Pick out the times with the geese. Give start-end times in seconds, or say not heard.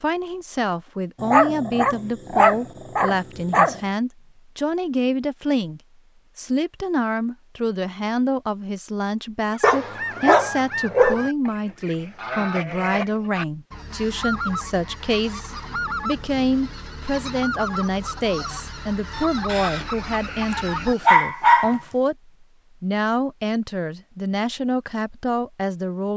9.5-20.9.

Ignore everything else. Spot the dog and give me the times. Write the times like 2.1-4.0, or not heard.
1.2-3.8, 9.6-11.3, 19.4-21.8.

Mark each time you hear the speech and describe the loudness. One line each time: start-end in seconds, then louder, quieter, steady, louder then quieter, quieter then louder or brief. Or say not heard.
0.0-26.1 steady.